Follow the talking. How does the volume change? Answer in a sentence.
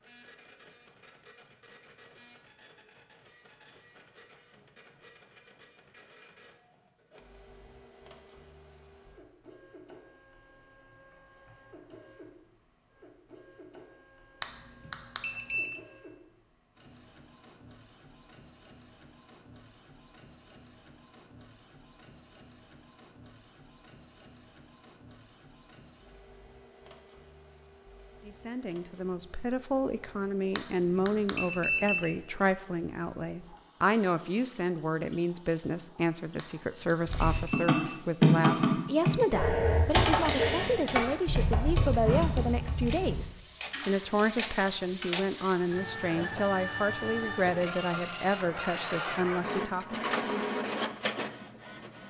The loudness of the talking stays about the same.